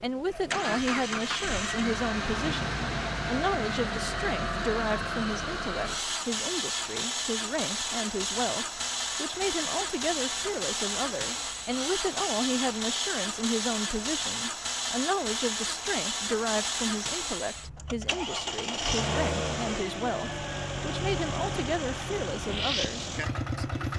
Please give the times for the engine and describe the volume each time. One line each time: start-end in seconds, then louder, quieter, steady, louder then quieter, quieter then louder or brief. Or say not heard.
0.0-23.9 steady.